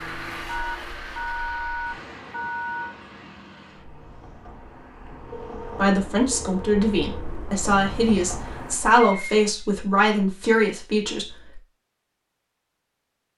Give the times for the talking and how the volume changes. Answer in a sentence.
You can hear the talking from 5.8 to 11.6 s, at a steady volume.